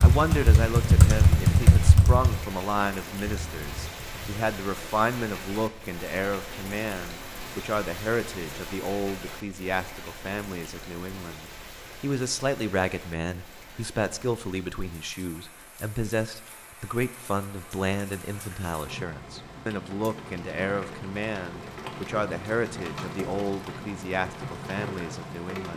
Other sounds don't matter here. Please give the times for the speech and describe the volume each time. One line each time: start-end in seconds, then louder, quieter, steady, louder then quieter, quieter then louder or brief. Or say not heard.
0.0-25.7 steady.